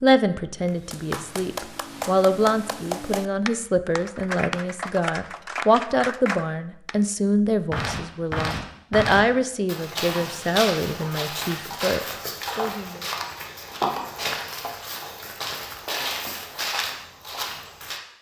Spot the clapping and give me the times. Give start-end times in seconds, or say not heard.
0.7-7.0.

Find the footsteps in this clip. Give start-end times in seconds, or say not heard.
7.7-18.0.